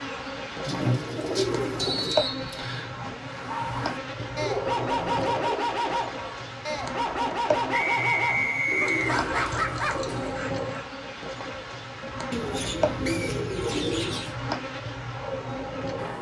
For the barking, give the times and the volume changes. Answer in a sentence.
You can hear the barking from 3.3 to 10.8 s, at a steady volume.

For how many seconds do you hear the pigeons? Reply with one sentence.
The pigeons can be heard for 7 seconds in total.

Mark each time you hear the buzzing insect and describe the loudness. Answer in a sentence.
You can hear the buzzing insect from 0.0 to 16.1 s, at a steady volume.